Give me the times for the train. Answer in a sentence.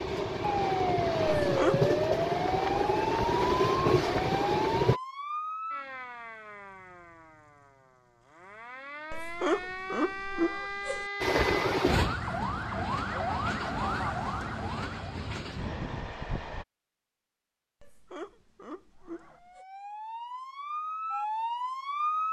You can hear the train from 0.0 to 5.0 s and from 11.2 to 16.6 s.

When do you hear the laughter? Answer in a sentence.
You can hear the laughter from 1.4 to 1.9 s, from 9.1 to 11.1 s and from 17.8 to 19.6 s.